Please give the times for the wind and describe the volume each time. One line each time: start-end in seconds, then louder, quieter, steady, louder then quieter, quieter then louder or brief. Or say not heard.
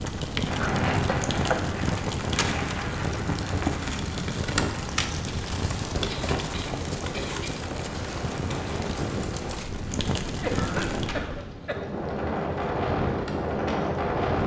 0.1-14.4 quieter then louder.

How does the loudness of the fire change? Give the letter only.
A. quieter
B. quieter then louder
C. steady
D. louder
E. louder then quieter
A.